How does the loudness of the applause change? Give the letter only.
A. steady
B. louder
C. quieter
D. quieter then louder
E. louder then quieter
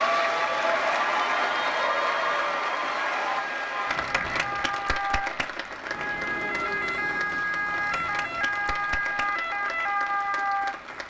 C.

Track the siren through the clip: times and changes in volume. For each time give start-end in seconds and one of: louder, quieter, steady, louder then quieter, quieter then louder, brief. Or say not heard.
0.0-11.0 louder.